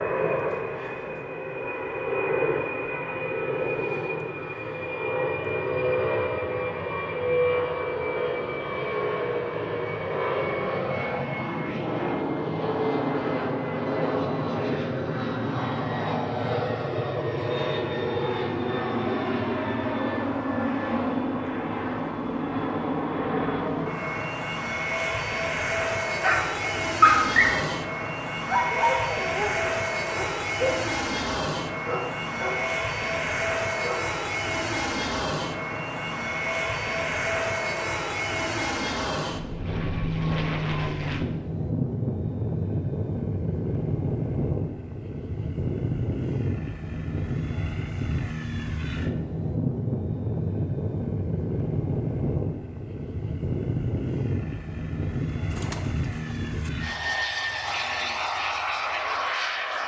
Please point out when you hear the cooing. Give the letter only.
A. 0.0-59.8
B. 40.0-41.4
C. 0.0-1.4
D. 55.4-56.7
D.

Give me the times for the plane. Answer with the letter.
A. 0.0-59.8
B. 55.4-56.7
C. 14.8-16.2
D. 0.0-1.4
A.